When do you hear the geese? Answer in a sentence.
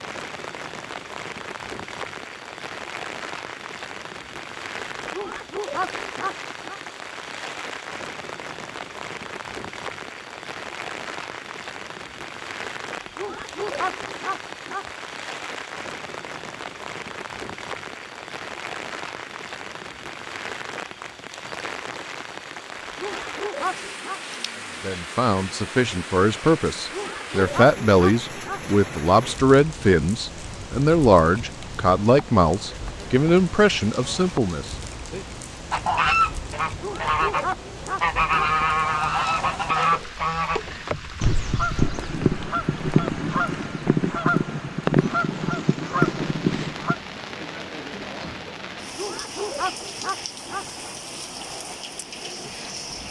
You can hear the geese from 35.7 to 47.0 s.